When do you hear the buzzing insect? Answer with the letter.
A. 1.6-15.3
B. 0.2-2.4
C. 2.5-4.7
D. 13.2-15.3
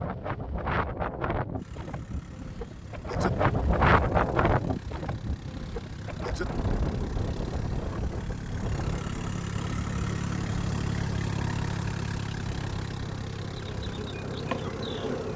D.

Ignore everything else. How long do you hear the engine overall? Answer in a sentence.
You can hear the engine for 14 seconds altogether.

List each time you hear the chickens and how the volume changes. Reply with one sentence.
The chickens can't be heard in this clip.